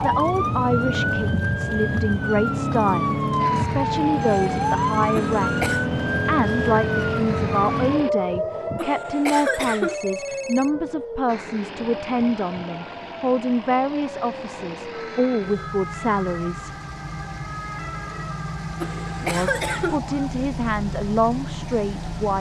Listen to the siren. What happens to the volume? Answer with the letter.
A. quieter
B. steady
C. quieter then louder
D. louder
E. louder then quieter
A.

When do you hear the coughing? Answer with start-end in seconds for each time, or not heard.
5.2-5.8, 8.8-9.9, 18.8-20.0.